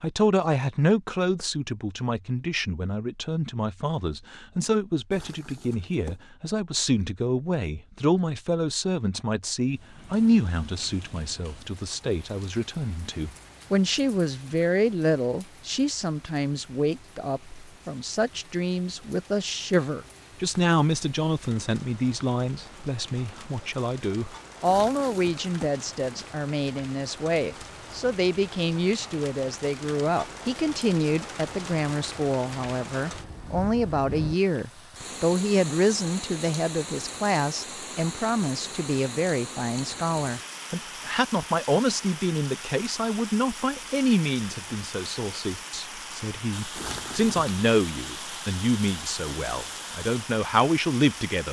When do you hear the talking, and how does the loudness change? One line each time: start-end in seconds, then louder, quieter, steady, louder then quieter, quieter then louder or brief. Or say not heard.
0.0-51.4 steady.